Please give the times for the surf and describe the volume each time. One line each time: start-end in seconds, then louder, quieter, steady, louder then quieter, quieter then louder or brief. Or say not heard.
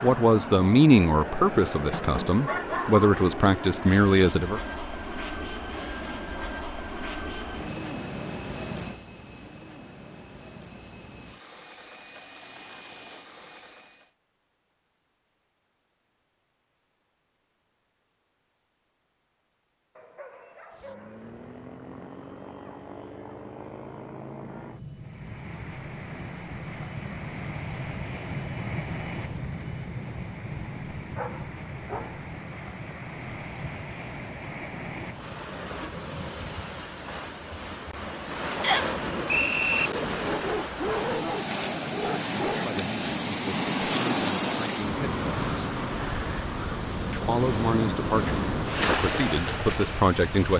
24.9-50.5 louder.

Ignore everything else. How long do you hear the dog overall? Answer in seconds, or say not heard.
6 s.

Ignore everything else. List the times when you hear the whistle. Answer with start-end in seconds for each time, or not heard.
38.6-39.9.